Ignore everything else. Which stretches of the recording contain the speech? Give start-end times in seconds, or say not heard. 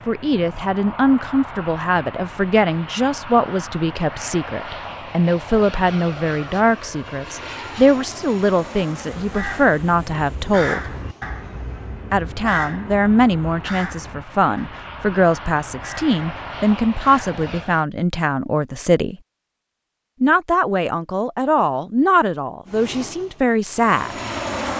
0.1-10.9, 12.1-19.1, 20.2-24.1.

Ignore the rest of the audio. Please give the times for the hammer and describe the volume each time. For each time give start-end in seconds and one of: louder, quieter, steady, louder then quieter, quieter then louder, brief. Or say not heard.
not heard.